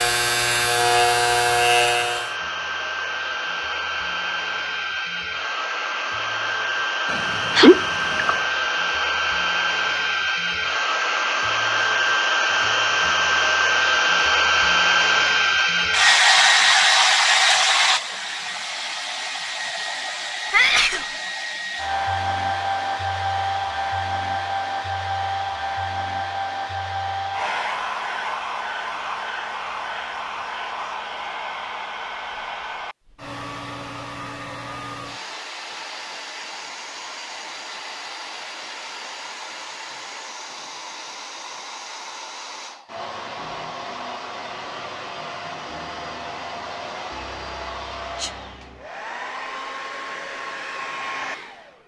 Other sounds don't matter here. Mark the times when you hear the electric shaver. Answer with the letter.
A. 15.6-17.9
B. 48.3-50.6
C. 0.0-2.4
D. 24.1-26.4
C.